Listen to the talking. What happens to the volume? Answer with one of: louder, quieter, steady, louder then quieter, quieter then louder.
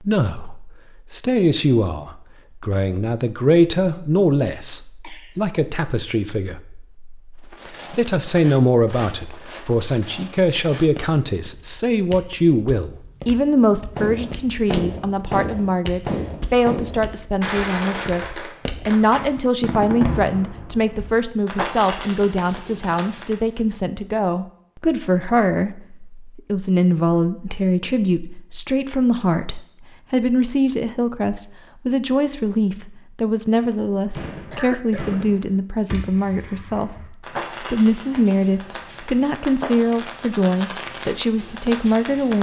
steady.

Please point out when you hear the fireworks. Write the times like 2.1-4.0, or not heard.
13.9-23.6, 33.5-42.3.